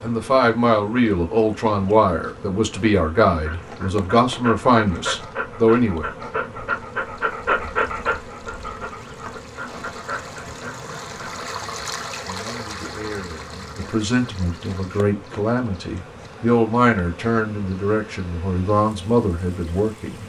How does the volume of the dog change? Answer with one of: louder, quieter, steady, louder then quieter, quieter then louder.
louder then quieter.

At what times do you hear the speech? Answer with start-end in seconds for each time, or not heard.
0.0-6.0, 12.2-20.2.